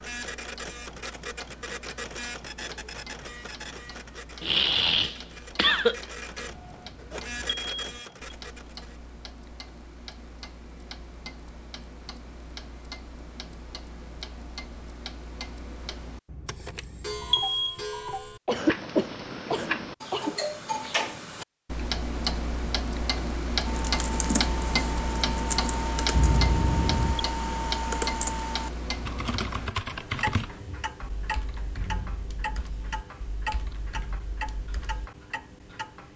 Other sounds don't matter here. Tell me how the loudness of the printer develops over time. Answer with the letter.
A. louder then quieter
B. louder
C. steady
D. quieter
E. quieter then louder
E.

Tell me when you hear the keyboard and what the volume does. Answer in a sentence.
The keyboard can be heard from 23.6 to 35.1 s, getting quieter.